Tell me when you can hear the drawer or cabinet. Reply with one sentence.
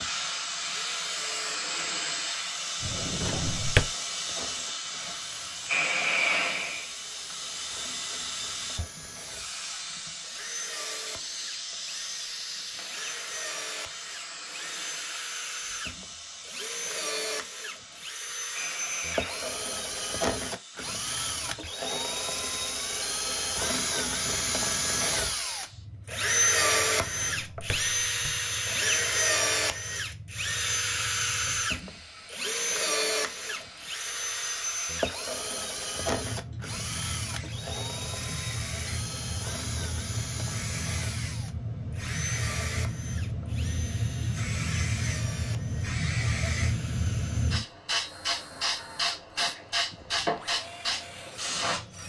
You can hear the drawer or cabinet from 2.8 to 3.9 s and from 26.9 to 28.4 s.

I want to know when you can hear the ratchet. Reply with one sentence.
You can't hear the ratchet here.